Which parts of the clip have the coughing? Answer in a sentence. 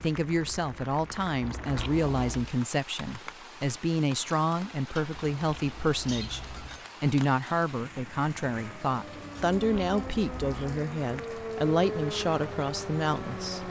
You can hear the coughing from 6.0 to 6.8 s.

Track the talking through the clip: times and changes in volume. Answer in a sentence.
The talking can be heard from 0.0 to 13.6 s, at a steady volume.